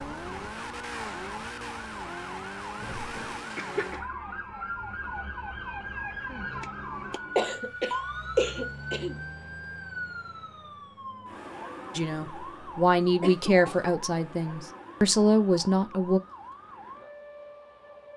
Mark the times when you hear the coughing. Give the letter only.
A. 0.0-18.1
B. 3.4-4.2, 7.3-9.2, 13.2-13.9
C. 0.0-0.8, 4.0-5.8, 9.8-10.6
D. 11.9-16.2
B.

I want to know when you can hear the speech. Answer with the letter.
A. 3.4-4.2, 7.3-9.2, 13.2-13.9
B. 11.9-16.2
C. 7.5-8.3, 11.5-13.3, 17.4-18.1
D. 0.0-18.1
B.